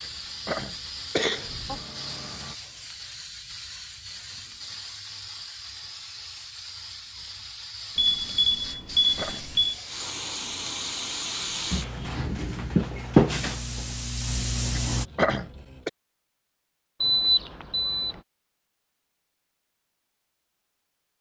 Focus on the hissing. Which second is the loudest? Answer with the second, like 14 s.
13 s.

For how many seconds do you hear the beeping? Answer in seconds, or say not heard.
4 s.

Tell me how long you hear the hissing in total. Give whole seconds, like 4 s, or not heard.
15 s.